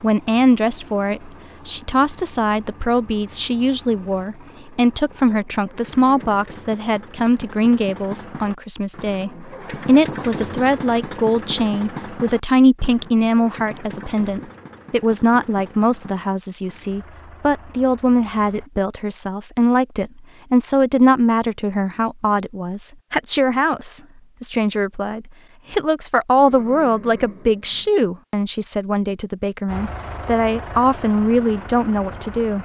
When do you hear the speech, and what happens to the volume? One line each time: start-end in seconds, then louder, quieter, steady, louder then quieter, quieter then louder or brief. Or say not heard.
0.0-32.6 steady.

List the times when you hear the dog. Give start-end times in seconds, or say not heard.
not heard.